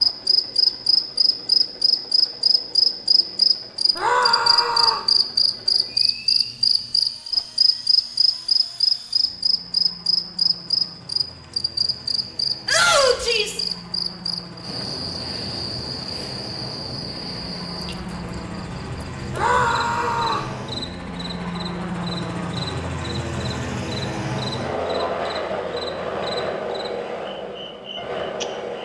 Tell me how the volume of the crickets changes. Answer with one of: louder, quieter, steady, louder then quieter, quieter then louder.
quieter.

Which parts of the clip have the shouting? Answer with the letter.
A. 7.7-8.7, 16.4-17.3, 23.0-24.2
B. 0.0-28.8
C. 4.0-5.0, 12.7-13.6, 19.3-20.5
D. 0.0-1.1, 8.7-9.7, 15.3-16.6
C.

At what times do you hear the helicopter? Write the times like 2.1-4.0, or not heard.
0.0-28.8.